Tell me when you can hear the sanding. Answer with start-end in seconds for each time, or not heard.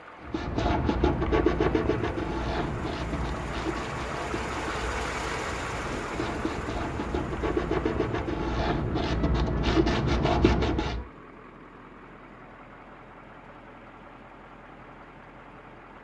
0.2-11.1.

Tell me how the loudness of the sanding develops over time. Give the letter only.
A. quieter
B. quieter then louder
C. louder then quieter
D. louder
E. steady
B.